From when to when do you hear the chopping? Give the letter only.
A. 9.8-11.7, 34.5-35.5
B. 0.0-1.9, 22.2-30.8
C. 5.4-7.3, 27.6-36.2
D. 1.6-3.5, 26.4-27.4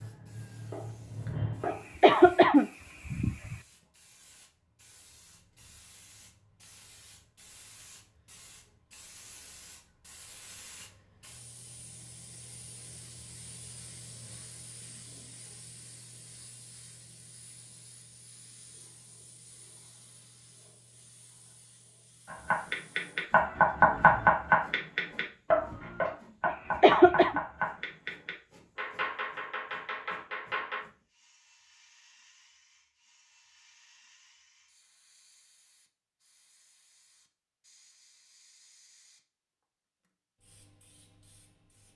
B.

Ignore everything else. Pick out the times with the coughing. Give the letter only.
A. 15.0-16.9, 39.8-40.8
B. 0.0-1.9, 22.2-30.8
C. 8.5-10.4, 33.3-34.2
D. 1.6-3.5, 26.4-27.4
D.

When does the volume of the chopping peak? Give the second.
24 s.